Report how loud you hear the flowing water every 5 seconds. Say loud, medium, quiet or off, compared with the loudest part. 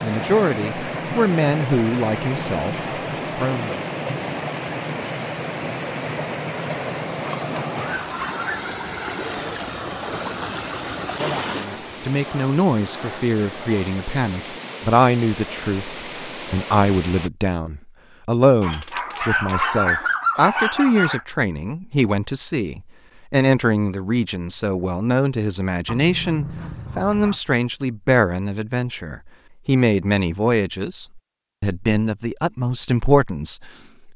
loud, loud, loud, medium, off, off, off.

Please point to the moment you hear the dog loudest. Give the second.
20 s.